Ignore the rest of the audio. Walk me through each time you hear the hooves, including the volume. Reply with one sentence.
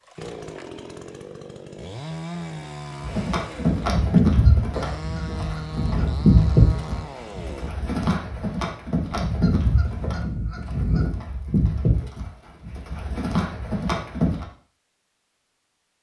The hooves can be heard from 3.0 to 14.4 s, getting quieter.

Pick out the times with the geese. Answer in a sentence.
You can hear the geese from 4.3 to 6.2 s and from 9.2 to 11.1 s.